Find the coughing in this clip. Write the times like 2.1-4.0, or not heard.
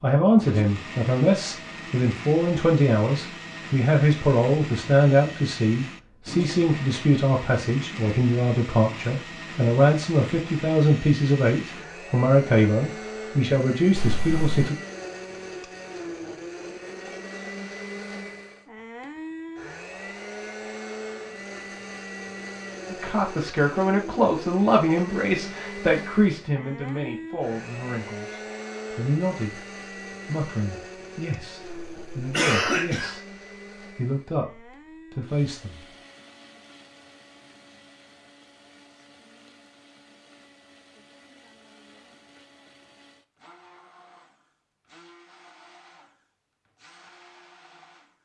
13.9-14.7, 31.6-33.1.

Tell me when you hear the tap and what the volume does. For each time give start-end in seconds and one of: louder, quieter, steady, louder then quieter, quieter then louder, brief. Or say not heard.
not heard.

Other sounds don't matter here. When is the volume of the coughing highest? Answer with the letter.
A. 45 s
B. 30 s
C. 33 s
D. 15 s
C.